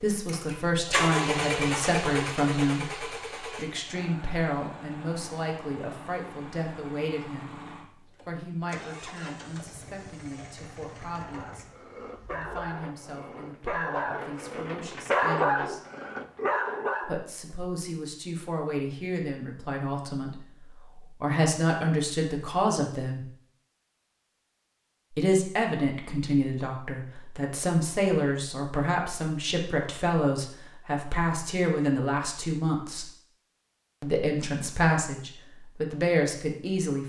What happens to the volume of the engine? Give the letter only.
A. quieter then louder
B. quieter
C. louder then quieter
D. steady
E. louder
B.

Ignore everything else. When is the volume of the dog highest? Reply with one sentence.
The volume of the dog peaks at 15 seconds.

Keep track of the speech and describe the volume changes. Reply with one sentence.
The volume of the speech goes down, then up.